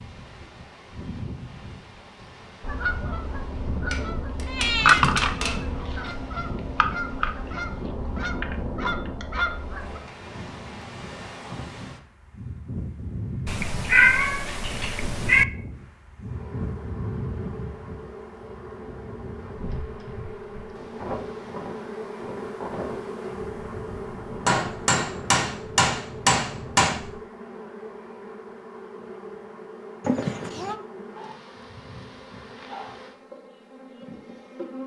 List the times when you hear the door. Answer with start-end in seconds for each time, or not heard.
not heard.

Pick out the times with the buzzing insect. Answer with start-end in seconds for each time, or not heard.
16.2-34.8.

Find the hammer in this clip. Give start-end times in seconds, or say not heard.
3.9-5.6, 24.4-26.9.